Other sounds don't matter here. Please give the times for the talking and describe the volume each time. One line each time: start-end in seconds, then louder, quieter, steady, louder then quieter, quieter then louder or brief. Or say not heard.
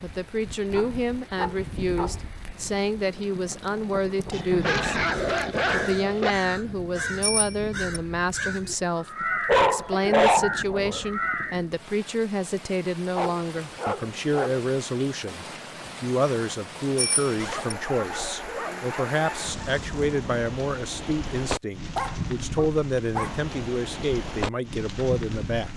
0.0-5.0 steady
5.7-25.7 steady.